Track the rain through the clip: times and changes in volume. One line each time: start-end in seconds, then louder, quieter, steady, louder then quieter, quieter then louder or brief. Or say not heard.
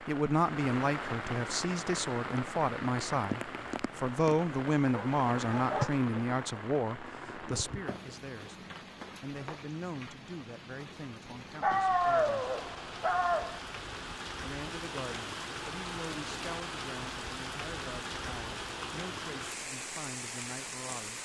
0.0-21.2 quieter then louder.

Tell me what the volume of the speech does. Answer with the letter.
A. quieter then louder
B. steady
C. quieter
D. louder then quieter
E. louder
C.